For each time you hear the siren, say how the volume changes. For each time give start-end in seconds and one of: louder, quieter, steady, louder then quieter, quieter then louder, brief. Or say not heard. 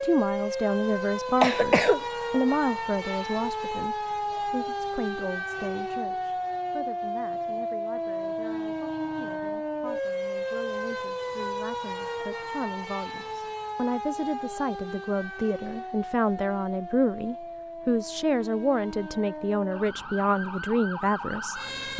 0.0-21.9 quieter.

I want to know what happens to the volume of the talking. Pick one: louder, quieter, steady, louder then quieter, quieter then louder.
quieter then louder.